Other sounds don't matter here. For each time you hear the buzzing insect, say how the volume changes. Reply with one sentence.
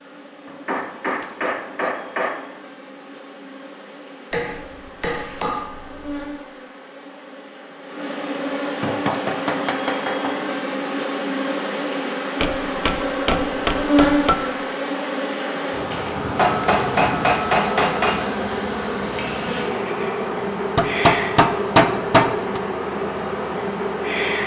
The buzzing insect can be heard from 0.0 to 24.4 s, getting louder.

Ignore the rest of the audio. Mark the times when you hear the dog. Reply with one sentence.
The dog can't be heard in this clip.